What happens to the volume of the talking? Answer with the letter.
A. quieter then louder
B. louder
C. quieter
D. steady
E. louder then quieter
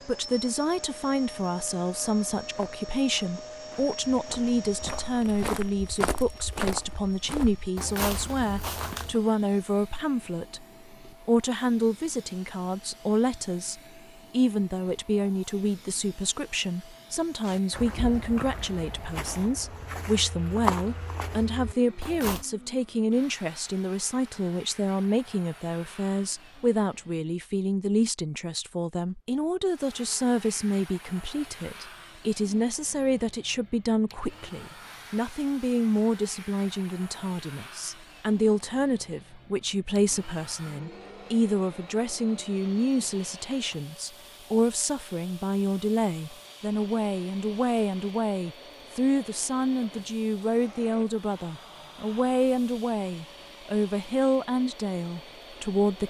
D.